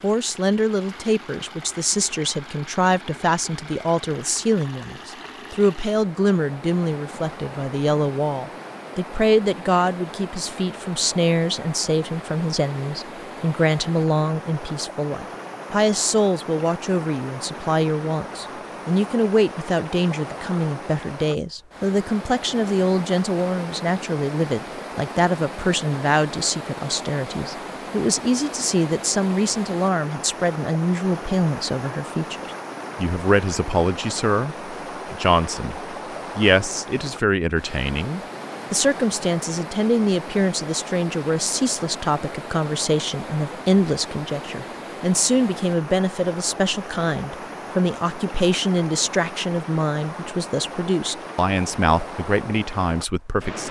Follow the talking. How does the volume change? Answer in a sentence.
The volume of the talking stays about the same.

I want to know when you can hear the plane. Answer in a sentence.
The plane can't be heard in this clip.